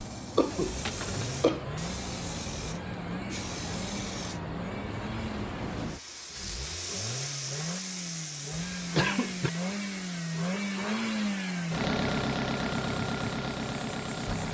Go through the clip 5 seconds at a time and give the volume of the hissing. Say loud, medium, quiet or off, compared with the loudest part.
loud, loud, medium.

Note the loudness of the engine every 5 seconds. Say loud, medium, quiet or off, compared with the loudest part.
medium, medium, loud.